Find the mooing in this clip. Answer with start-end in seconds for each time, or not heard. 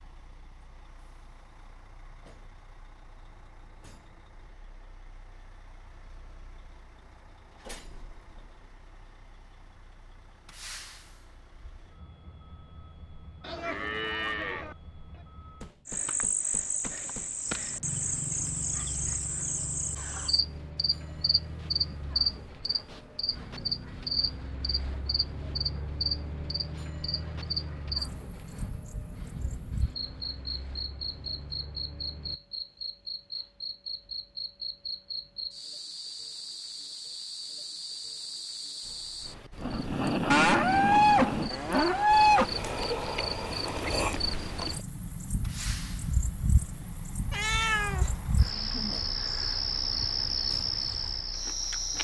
13.4-14.8, 40.3-42.5.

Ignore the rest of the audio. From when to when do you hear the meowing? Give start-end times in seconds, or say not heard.
47.3-48.2.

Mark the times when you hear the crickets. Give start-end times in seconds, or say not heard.
15.8-51.9.